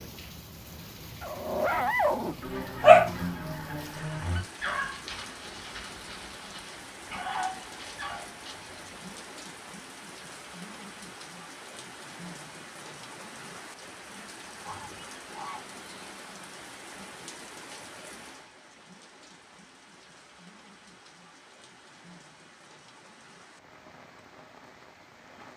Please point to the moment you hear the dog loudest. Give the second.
3 s.